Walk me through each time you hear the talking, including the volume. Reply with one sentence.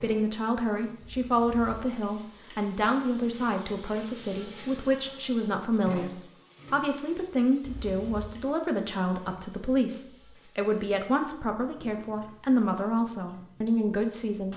The talking can be heard from 0.0 to 14.5 s, at a steady volume.